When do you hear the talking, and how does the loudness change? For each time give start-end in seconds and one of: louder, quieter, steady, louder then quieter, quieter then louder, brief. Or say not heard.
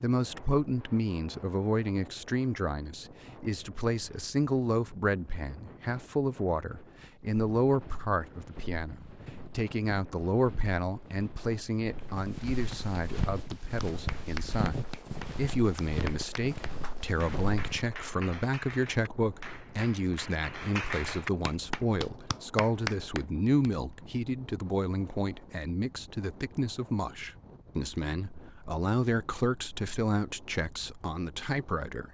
0.0-32.0 steady.